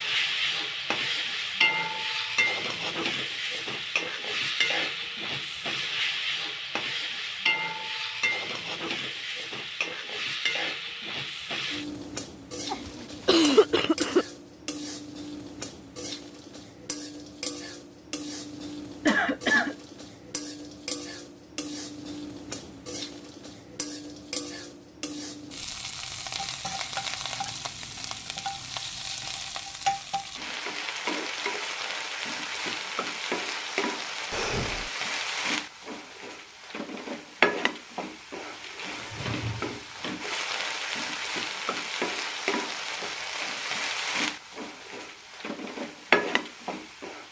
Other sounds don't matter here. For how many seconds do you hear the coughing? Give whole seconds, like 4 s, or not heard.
3 s.